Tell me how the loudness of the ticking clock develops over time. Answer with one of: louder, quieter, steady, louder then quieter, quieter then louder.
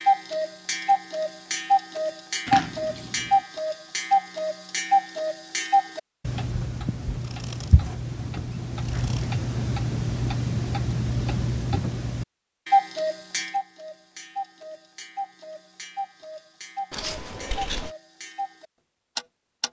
quieter.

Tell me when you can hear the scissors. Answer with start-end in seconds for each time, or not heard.
2.5-3.5, 7.2-7.9, 8.8-9.2, 16.9-17.9.